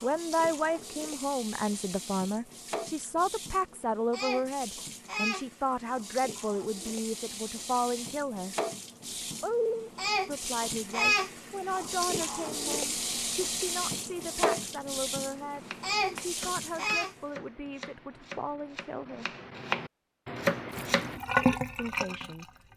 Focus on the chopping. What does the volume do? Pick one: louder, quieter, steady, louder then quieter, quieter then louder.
louder.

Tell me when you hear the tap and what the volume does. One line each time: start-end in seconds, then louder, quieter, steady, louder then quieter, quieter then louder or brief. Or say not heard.
0.0-17.1 louder
20.8-22.7 brief.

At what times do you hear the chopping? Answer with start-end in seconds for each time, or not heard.
15.5-21.2.